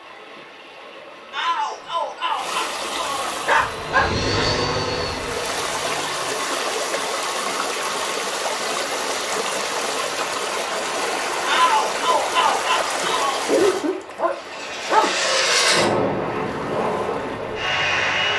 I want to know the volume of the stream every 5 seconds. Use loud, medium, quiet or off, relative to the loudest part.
medium, loud, loud, medium.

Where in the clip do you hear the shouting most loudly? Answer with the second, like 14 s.
12 s.